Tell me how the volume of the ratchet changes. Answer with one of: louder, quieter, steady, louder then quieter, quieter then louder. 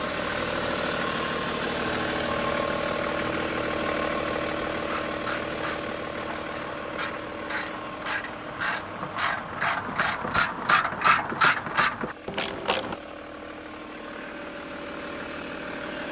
louder.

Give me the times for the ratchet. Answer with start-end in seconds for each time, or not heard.
4.8-12.9.